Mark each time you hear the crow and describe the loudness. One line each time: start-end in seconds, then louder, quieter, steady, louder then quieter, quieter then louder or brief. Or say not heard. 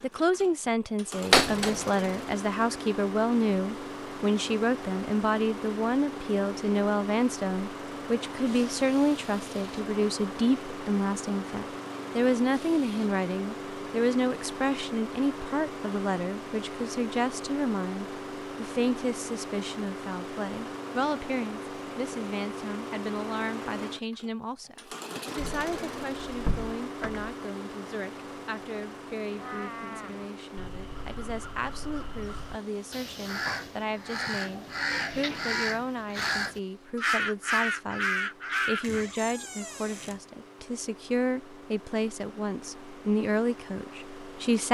29.3-39.0 louder.